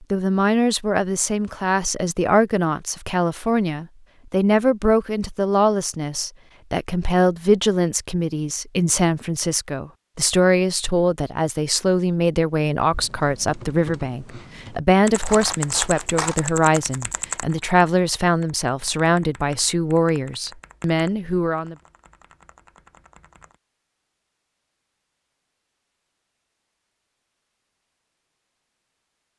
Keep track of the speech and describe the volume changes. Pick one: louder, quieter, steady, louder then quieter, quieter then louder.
steady.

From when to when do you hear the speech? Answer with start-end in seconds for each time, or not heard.
0.0-21.8.